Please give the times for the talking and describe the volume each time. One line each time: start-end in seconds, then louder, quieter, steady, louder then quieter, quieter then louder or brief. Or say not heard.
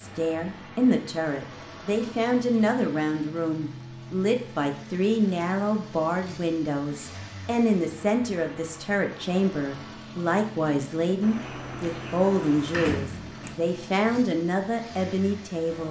0.0-15.8 steady.